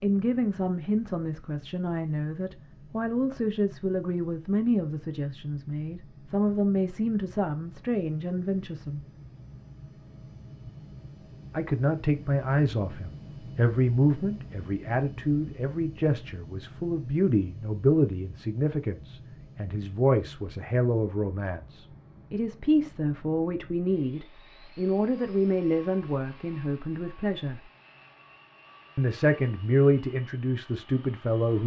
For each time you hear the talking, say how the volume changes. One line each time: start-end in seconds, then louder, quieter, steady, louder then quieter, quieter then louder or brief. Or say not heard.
0.0-9.0 steady
11.5-27.6 steady
28.9-31.6 brief.